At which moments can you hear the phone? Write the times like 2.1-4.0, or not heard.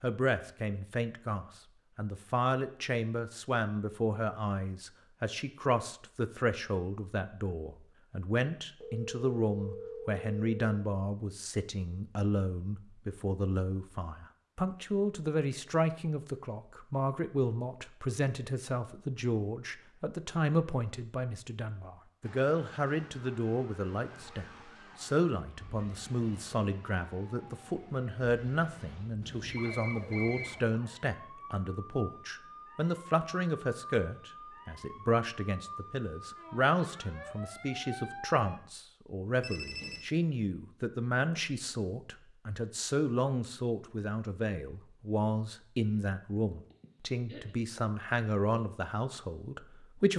8.8-10.8, 29.2-30.6, 39.4-40.0.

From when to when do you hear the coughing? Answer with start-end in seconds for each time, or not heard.
46.7-47.5.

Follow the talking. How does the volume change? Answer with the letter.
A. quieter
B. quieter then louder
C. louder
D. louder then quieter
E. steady
E.